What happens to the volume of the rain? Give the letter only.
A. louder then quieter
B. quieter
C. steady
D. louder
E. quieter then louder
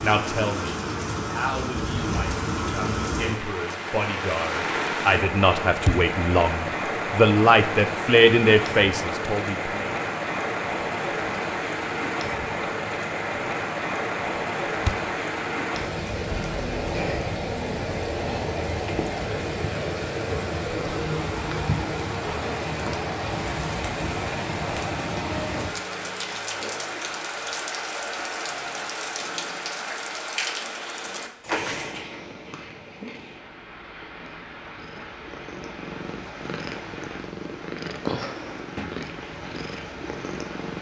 B.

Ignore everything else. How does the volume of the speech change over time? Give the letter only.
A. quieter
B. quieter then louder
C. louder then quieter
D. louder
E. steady
D.